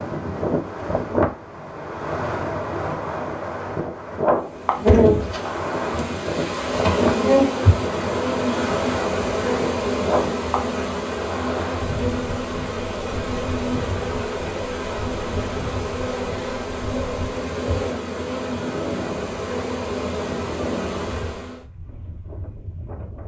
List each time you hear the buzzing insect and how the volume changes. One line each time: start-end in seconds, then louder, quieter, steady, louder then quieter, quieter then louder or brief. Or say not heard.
4.3-21.6 quieter.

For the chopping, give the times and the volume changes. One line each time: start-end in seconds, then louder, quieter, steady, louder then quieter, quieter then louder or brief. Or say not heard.
not heard.